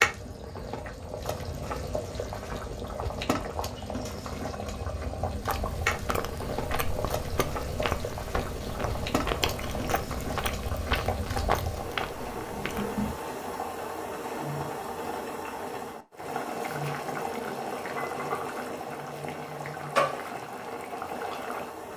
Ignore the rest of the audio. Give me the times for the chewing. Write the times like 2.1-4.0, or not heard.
5.2-13.2.